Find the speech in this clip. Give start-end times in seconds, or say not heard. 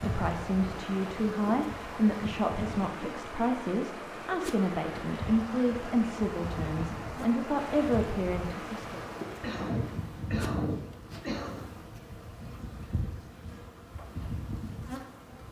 0.0-9.0.